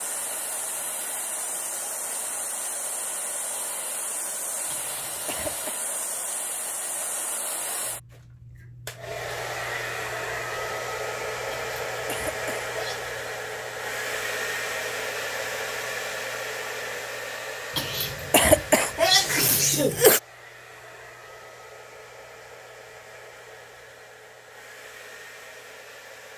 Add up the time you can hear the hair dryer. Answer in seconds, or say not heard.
26 s.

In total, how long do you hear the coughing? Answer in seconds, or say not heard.
5 s.